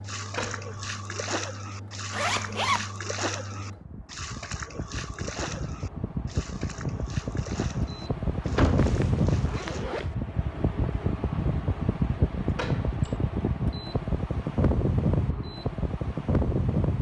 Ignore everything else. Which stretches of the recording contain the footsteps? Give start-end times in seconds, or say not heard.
not heard.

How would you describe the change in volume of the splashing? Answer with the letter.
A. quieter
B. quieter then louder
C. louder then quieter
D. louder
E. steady
A.